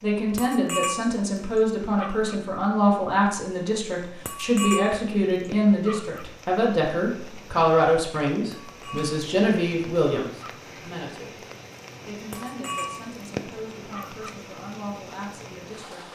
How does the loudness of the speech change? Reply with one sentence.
The loudness of the speech goes down.